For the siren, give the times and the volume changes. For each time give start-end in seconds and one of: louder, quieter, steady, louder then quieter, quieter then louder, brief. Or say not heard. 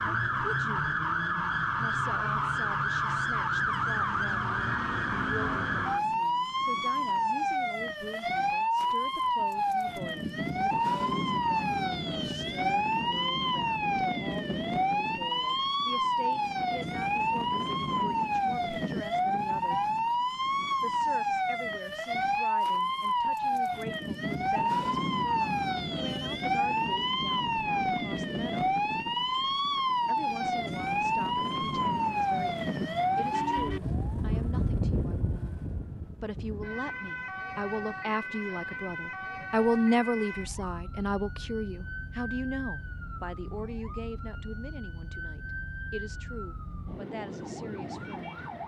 0.0-48.6 quieter.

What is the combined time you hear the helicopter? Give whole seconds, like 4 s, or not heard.
not heard.